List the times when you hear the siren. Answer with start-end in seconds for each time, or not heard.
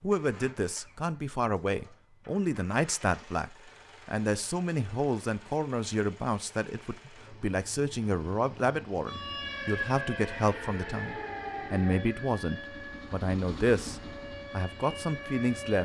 9.1-15.8.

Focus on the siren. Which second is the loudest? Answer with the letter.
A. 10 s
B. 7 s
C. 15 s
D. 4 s
A.